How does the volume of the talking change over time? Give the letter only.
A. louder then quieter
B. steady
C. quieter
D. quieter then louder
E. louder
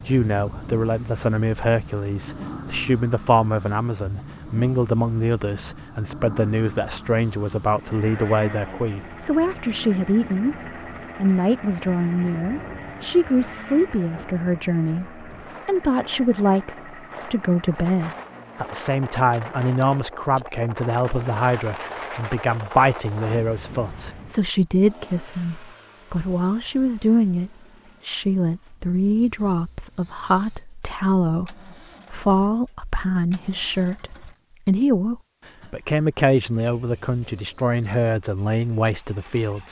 B.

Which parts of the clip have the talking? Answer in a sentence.
The talking can be heard from 0.1 to 10.6 s and from 11.2 to 39.6 s.